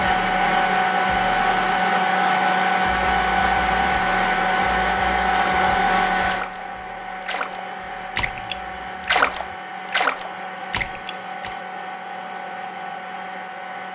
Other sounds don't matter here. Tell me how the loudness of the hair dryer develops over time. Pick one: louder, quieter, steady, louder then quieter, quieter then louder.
quieter.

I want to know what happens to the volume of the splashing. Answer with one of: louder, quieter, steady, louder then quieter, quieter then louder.
louder then quieter.